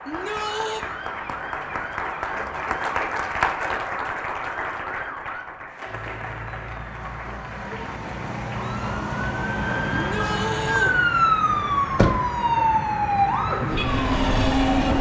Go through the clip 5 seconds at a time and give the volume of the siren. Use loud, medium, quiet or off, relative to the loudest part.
quiet, medium, loud.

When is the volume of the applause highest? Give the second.
3 s.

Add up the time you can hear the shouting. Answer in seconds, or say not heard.
2 s.